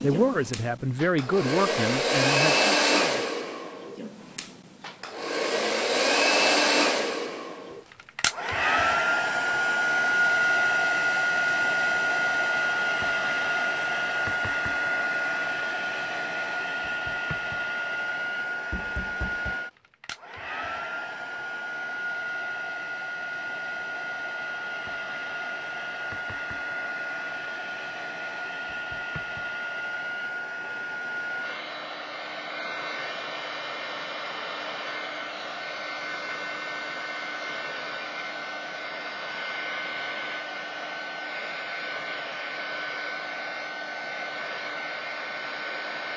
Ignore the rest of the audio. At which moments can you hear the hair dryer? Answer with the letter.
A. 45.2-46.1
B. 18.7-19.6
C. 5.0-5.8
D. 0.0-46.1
D.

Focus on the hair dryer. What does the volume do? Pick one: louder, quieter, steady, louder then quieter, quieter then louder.
quieter.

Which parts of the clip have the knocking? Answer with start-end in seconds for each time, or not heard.
18.7-19.6.